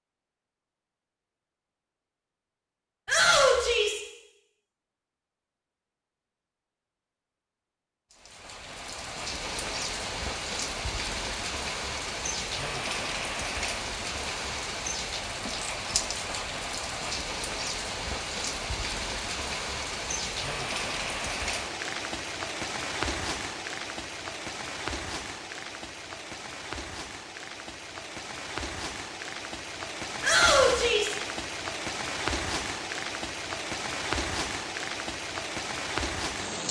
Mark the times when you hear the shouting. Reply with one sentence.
The shouting can be heard from 3.0 to 4.0 s and from 30.2 to 31.1 s.